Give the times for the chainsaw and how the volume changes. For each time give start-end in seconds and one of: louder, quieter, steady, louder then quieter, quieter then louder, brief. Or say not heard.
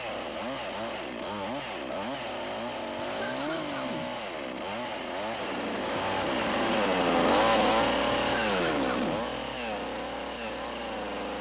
0.0-11.3 louder then quieter.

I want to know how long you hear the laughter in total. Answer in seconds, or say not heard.
2 s.